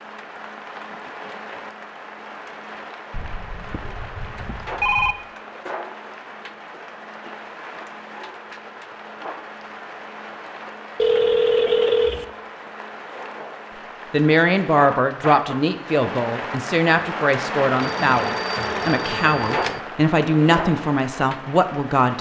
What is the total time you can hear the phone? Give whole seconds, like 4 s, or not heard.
5 s.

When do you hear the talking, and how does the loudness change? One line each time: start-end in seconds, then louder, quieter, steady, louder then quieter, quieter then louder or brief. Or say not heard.
14.1-22.1 steady.